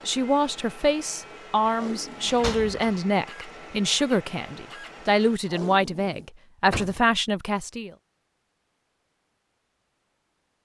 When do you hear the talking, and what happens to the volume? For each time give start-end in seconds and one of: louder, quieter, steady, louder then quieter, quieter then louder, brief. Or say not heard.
0.1-7.9 steady.